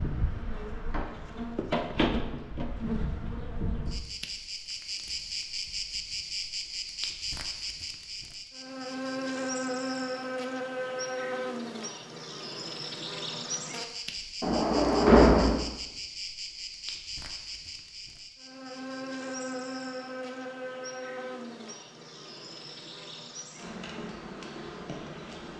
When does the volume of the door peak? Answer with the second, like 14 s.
15 s.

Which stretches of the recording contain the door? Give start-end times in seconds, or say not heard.
0.9-1.3, 14.4-15.6.